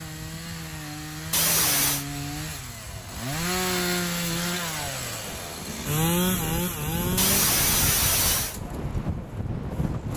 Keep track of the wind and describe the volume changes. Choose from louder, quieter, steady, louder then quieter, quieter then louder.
louder.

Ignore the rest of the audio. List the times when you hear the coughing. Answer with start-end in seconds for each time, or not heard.
1.3-2.0, 7.2-8.6.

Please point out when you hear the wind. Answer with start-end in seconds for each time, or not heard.
0.0-10.1.